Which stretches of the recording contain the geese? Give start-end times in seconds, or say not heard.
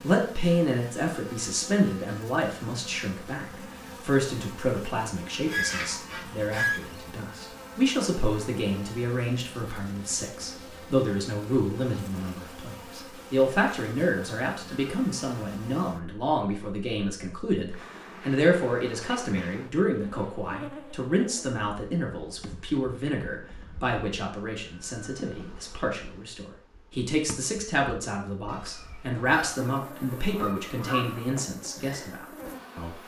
4.9-6.8, 28.4-31.4.